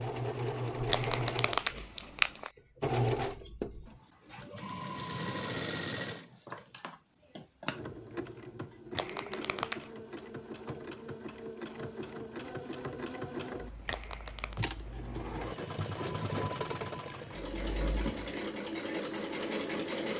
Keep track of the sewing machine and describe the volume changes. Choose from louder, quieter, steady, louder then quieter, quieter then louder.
quieter then louder.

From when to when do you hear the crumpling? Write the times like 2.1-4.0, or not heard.
0.8-2.5, 8.9-9.9, 13.8-14.6.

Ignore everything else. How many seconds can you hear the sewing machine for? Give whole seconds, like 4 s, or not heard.
20 s.